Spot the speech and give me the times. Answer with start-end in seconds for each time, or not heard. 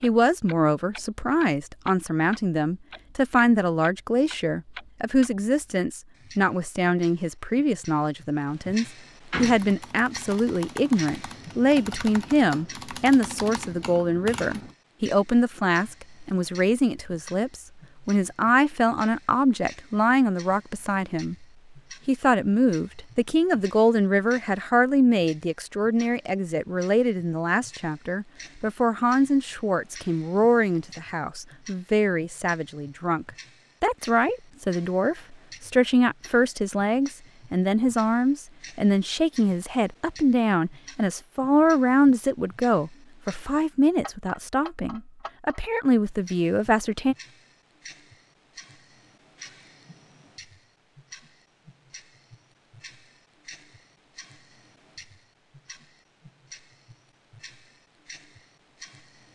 0.0-21.4, 22.1-47.1.